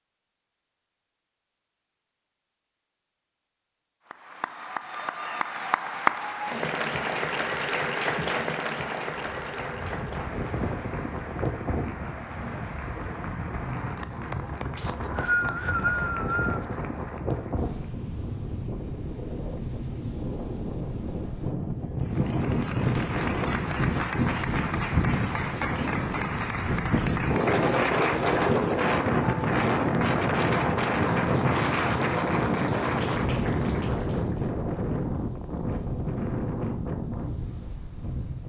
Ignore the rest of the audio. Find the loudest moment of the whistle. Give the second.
15 s.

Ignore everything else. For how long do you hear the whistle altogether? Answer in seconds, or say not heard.
2 s.